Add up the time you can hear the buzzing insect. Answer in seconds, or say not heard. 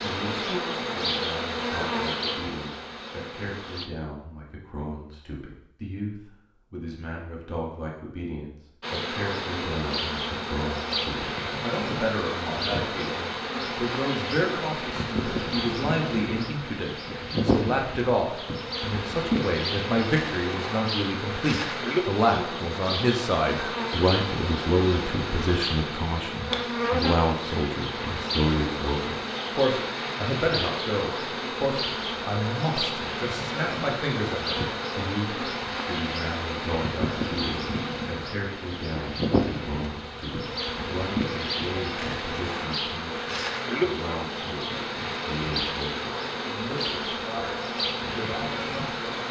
44 s.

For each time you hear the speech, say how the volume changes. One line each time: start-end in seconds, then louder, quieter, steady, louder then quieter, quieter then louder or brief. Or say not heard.
0.0-49.2 louder then quieter.